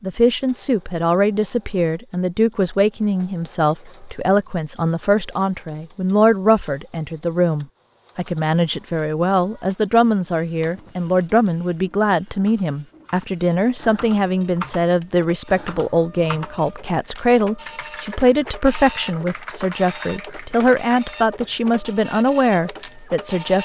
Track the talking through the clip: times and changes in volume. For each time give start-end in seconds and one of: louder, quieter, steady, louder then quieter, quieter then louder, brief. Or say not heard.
0.0-23.6 steady.